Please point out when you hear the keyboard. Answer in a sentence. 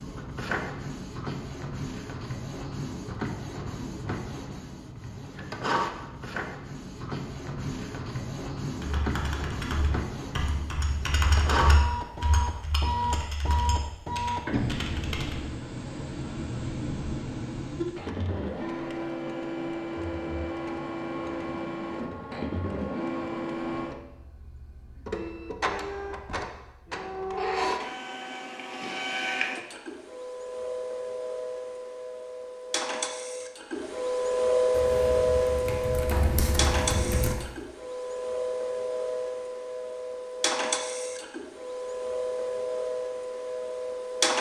The keyboard can be heard from 8.8 to 15.4 s and from 34.7 to 37.5 s.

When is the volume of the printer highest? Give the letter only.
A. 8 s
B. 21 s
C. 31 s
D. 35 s
D.